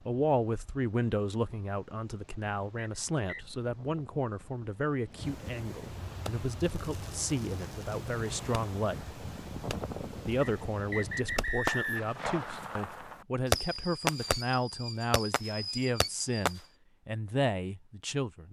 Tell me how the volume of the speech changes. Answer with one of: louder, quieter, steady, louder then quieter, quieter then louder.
steady.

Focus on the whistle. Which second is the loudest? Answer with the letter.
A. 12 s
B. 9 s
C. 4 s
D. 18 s
A.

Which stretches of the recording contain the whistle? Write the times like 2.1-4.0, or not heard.
2.8-3.5, 10.4-12.2.